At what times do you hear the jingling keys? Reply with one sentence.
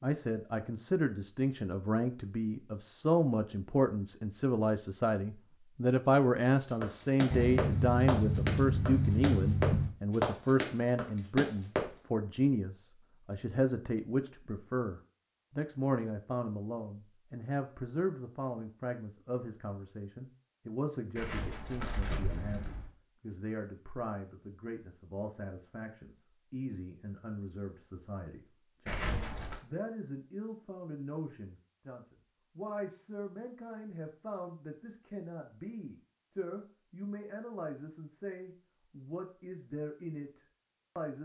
You can hear the jingling keys from 7.3 to 9.9 s, from 21.1 to 22.9 s and from 28.9 to 29.6 s.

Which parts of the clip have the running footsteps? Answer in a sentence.
You can hear the running footsteps from 6.8 to 11.9 s.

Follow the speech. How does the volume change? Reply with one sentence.
The volume of the speech goes down.